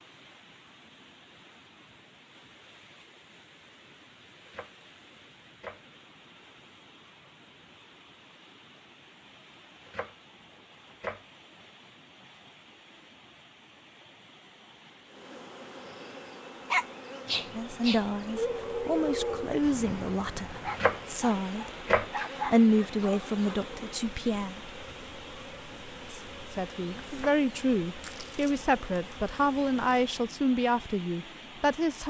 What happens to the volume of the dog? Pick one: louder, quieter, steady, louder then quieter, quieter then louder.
quieter then louder.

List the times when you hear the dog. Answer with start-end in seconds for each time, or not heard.
16.7-23.8.